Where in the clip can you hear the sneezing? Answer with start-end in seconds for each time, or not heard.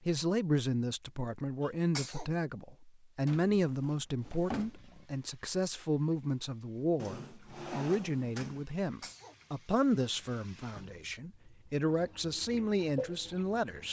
1.6-2.3, 8.7-9.3.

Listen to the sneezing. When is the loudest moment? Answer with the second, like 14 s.
2 s.